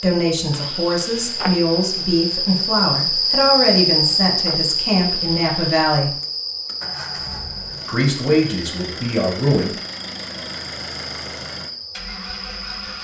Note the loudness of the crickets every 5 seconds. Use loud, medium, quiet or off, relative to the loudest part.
loud, medium, quiet.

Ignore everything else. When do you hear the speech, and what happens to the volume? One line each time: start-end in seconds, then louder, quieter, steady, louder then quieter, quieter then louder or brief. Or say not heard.
0.0-6.1 steady
7.8-9.7 brief.